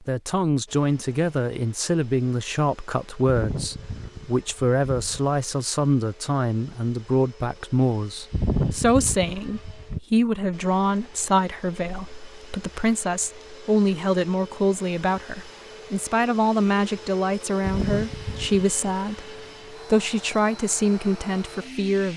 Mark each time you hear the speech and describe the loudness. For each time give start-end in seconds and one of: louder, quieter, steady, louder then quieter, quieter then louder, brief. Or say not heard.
0.1-22.1 steady.